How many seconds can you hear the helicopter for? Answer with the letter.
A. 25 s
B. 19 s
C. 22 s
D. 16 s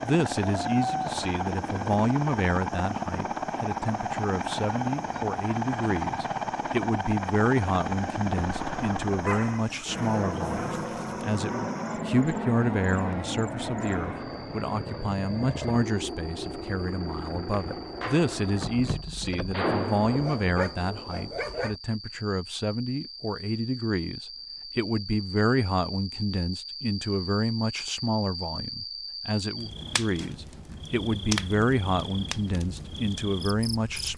B.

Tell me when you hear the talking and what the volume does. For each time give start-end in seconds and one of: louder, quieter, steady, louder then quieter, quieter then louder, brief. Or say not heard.
0.0-34.1 steady.